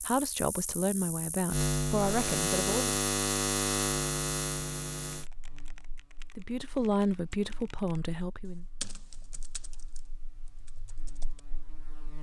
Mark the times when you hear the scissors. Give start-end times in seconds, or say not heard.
not heard.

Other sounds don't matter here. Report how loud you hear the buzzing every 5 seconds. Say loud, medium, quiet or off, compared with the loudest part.
loud, quiet, quiet.